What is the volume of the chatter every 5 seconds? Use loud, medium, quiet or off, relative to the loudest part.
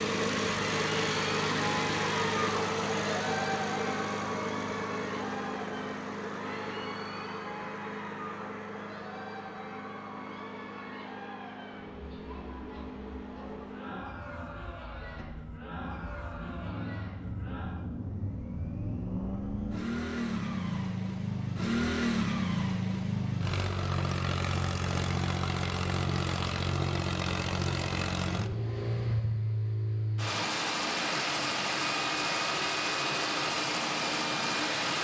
loud, medium, medium, medium, off, off, off.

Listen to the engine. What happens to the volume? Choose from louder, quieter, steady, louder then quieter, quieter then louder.
quieter then louder.